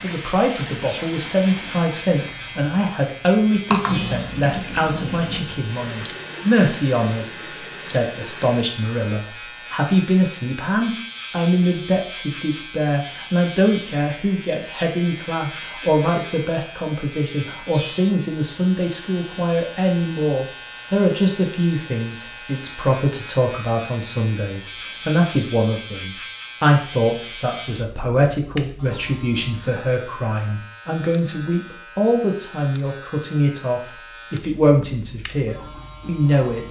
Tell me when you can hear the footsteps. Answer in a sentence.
You can't hear the footsteps here.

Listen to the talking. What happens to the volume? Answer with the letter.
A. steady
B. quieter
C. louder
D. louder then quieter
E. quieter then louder
A.